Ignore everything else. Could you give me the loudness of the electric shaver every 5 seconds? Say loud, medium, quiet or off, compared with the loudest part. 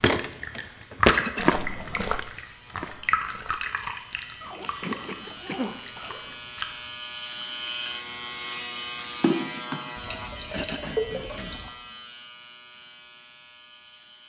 quiet, loud, medium.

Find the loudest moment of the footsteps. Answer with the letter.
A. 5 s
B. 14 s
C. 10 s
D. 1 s
D.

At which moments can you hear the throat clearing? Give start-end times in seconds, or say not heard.
1.1-1.6, 4.8-5.8, 10.5-11.6.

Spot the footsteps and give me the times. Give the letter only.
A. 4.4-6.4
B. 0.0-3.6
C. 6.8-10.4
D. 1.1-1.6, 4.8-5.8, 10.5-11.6
B.